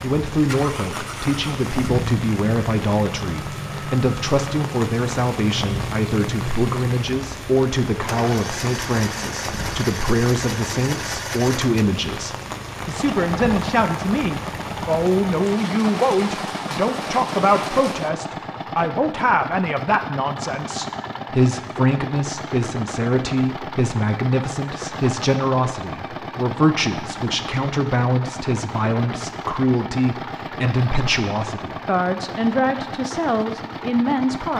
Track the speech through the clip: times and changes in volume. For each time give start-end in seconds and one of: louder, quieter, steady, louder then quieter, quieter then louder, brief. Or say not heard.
0.0-34.5 steady.